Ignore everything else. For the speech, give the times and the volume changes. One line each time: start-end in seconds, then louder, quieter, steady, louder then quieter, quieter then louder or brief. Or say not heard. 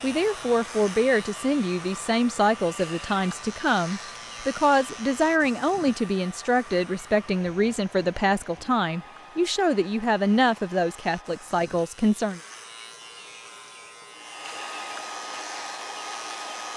0.0-12.4 steady.